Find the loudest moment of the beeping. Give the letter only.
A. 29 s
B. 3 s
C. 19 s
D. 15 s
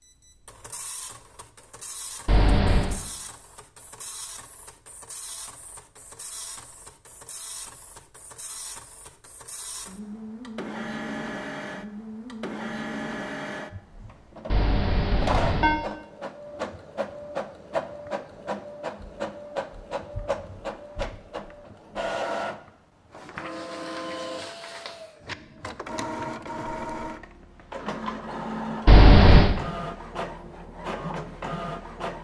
A.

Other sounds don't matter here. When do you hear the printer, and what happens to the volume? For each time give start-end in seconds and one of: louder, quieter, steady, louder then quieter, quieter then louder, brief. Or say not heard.
0.0-32.1 louder.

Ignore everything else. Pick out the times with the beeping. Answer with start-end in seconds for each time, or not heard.
2.2-3.0, 14.5-15.8, 28.9-29.6.